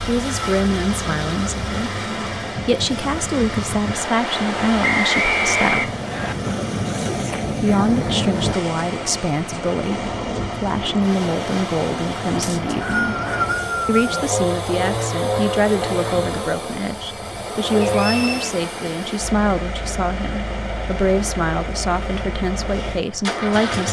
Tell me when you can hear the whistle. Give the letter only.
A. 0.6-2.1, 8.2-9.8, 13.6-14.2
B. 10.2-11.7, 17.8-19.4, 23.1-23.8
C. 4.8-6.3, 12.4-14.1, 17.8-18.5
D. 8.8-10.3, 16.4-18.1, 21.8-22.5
C.